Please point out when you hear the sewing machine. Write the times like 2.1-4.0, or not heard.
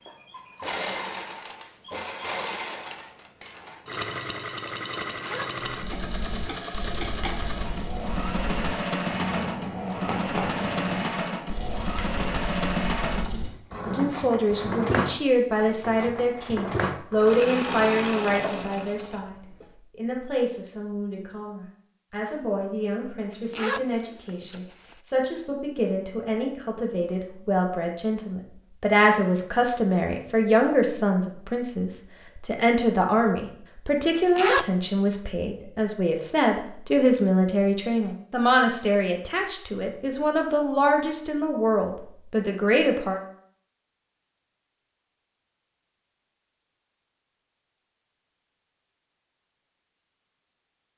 0.1-19.6.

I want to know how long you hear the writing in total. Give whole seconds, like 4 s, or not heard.
9 s.